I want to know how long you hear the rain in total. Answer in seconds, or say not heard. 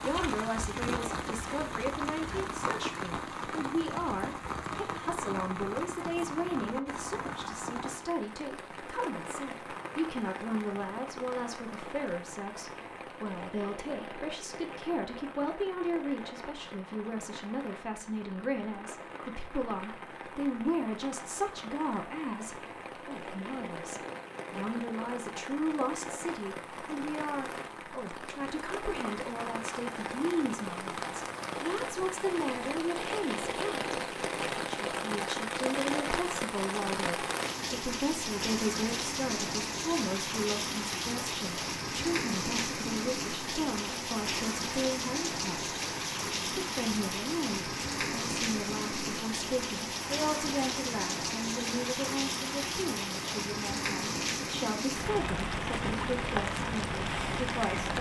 58 s.